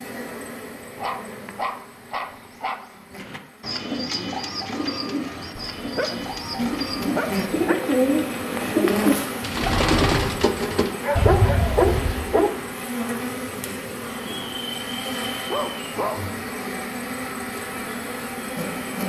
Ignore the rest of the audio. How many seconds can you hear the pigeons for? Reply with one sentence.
You can hear the pigeons for 9 seconds altogether.